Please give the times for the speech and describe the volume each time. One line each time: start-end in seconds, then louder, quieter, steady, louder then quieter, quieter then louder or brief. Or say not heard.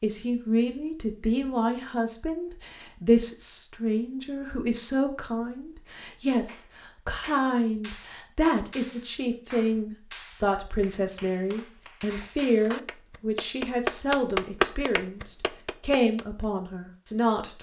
0.0-17.5 steady.